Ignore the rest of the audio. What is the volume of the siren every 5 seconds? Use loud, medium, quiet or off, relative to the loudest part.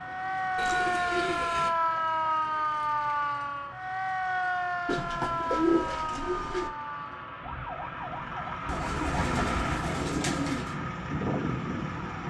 loud, medium, medium.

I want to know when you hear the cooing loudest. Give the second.
6 s.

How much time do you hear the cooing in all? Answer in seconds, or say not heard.
5 s.